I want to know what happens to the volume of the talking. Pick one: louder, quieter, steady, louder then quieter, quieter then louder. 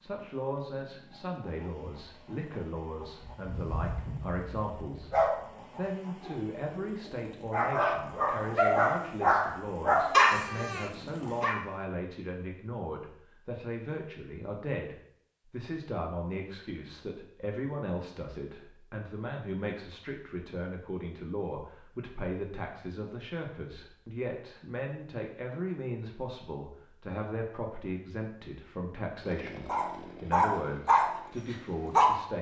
steady.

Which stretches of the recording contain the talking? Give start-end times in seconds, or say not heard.
0.0-32.3.